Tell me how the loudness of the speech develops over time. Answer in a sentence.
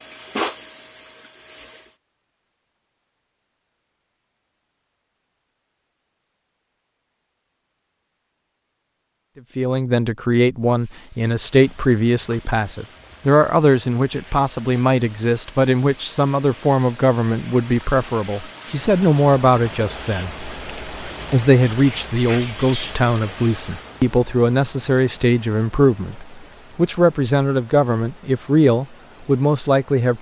The loudness of the speech stays about the same.